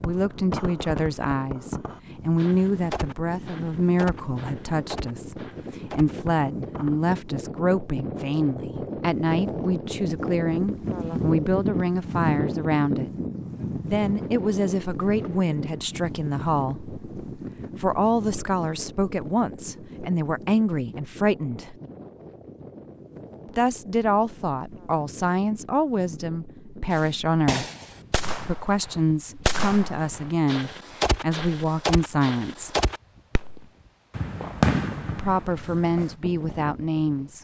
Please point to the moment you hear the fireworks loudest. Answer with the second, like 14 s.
35 s.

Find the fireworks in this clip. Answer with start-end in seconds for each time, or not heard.
0.0-7.0, 26.9-36.1.